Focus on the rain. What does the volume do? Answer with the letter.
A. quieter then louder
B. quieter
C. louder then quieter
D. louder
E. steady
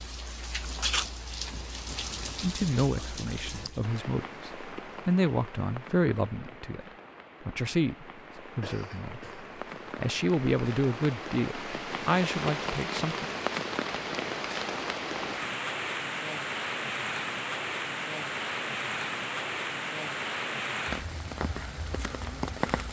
A.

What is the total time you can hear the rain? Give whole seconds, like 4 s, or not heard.
23 s.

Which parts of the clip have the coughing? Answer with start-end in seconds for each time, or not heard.
8.6-9.5.